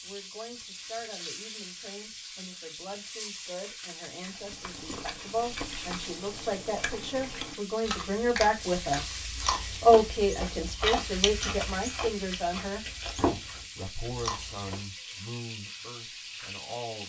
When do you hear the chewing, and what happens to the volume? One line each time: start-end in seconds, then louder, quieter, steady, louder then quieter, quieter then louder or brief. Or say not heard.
4.2-14.8 louder.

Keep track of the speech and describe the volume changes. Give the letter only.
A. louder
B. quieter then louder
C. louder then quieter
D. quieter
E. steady
C.